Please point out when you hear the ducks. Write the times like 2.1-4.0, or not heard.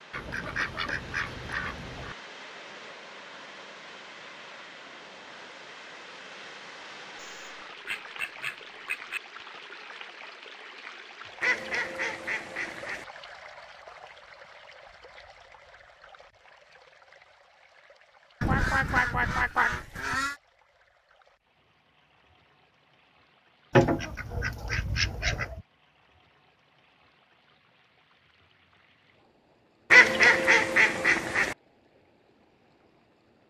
0.1-2.1, 7.2-9.2, 11.4-13.1, 18.4-20.4, 23.8-25.6, 29.9-31.6.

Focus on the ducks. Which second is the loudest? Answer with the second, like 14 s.
30 s.